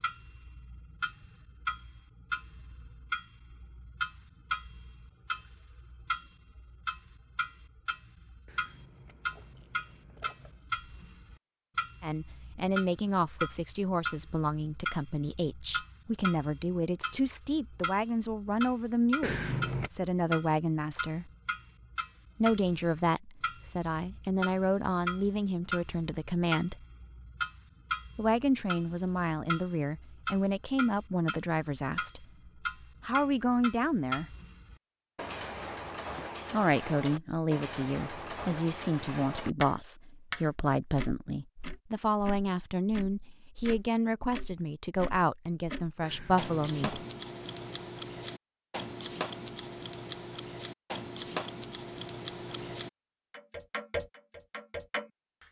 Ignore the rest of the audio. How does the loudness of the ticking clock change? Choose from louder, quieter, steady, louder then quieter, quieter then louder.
steady.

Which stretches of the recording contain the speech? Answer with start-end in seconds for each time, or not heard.
12.0-21.3, 22.4-26.9, 28.1-32.2, 33.0-34.3, 36.5-47.0.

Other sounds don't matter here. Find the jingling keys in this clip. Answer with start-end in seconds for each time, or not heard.
8.4-10.7, 19.2-19.9, 46.0-47.1.